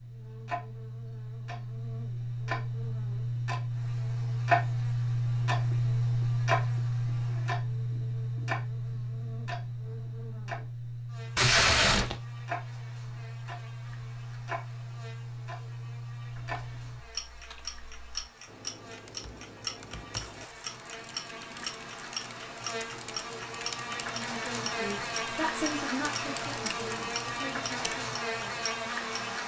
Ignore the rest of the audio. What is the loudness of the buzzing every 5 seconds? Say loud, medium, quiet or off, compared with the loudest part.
quiet, quiet, quiet, quiet, medium, loud.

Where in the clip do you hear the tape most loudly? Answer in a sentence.
The loudest moment of the tape is at 12 seconds.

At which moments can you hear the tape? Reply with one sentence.
You can hear the tape from 11.3 to 12.2 s and from 20.1 to 20.6 s.